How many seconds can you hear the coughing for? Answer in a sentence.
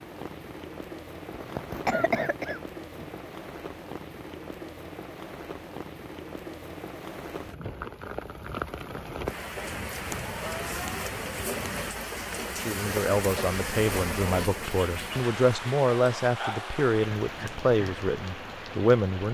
The coughing can be heard for 2 seconds in total.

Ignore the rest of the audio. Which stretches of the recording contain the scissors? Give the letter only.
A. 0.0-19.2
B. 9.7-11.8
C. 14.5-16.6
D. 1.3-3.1
B.